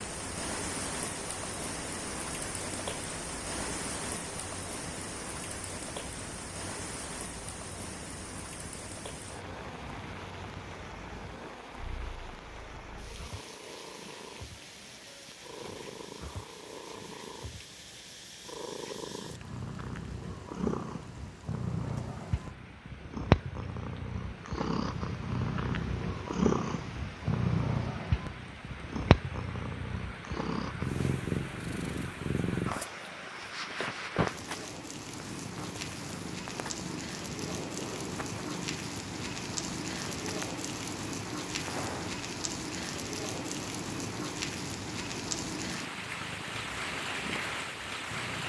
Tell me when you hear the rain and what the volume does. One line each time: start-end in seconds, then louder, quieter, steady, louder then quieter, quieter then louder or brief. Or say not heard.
0.0-48.4 quieter then louder.